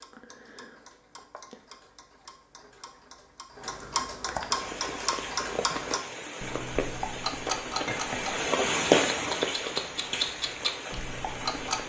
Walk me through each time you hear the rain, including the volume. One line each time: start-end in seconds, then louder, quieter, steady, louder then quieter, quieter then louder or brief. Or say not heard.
4.5-11.8 louder then quieter.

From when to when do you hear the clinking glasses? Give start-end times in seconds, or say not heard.
7.8-8.2.